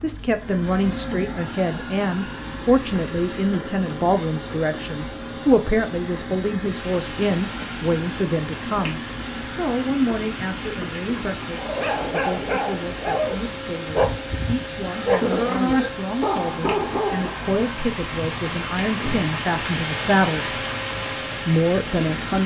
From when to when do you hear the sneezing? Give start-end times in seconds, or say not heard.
14.8-15.9.